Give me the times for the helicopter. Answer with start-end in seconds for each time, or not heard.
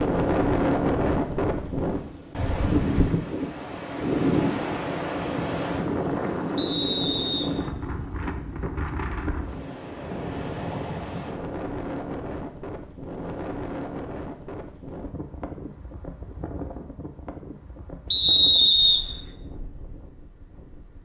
not heard.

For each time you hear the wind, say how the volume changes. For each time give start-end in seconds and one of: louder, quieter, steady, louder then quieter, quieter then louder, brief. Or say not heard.
0.0-21.0 quieter.